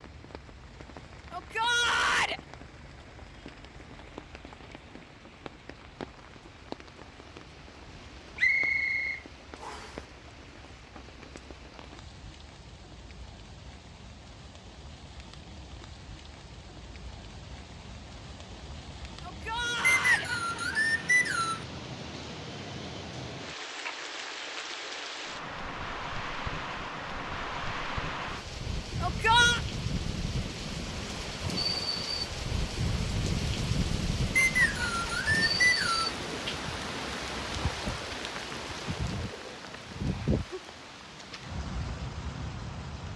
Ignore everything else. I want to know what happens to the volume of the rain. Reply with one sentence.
The volume of the rain goes up.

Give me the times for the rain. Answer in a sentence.
You can hear the rain from 0.0 to 43.1 s.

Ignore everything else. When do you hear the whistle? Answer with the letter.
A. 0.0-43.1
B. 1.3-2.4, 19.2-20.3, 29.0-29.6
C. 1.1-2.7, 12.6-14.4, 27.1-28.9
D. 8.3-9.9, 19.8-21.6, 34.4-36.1
D.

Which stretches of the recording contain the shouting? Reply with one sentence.
The shouting can be heard from 1.3 to 2.4 s, from 19.2 to 20.3 s and from 29.0 to 29.6 s.